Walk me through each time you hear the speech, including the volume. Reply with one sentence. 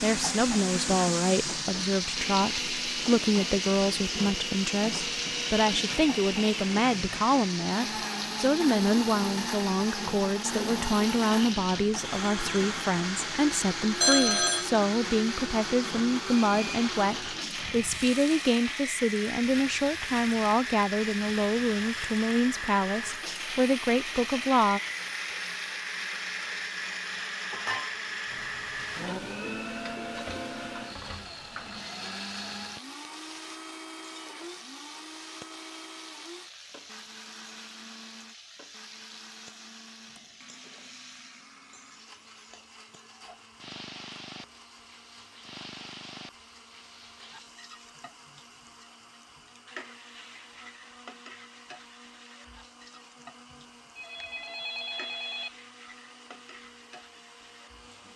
The speech can be heard from 0.0 to 24.8 s, at a steady volume.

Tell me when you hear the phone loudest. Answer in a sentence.
The volume of the phone peaks at 14 seconds.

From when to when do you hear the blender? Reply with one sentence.
The blender can be heard from 0.0 to 58.1 s.